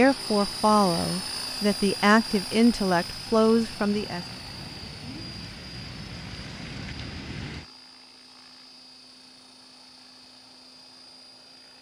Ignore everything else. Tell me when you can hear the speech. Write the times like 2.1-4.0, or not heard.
0.0-4.2.